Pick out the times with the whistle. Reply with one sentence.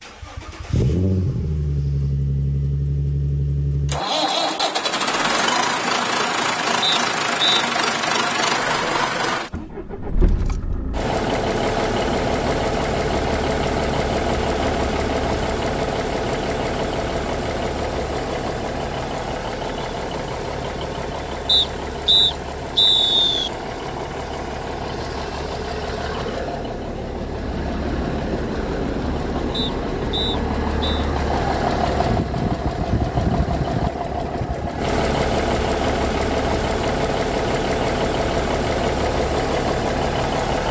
The whistle can be heard from 6.8 to 7.7 s, from 21.4 to 23.5 s and from 29.5 to 31.1 s.